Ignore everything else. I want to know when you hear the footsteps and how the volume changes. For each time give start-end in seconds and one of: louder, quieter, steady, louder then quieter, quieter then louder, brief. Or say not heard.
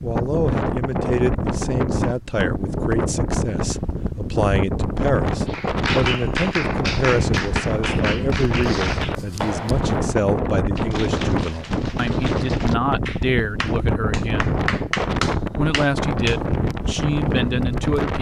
not heard.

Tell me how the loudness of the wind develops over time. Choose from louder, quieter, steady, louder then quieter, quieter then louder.
steady.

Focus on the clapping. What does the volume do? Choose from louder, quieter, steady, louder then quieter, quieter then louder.
quieter then louder.